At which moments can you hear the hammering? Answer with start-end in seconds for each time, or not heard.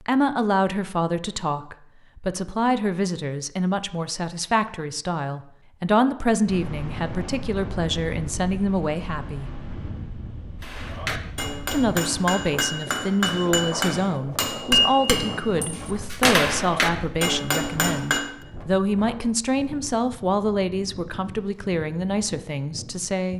10.6-18.4.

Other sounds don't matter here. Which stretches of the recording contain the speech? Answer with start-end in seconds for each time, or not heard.
0.1-9.6, 11.7-23.3.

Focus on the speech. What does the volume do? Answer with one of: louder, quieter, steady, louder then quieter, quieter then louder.
steady.